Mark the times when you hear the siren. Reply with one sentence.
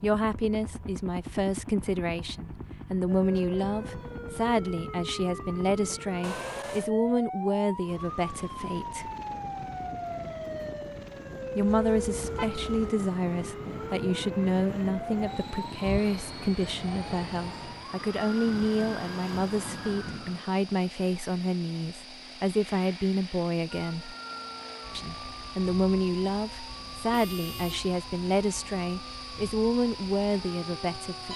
You can hear the siren from 3.0 to 20.4 s and from 23.7 to 31.3 s.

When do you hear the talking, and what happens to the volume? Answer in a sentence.
The talking can be heard from 0.0 to 9.1 s, at a steady volume; from 11.6 to 24.1 s, at a steady volume; and from 24.9 to 31.3 s, at a steady volume.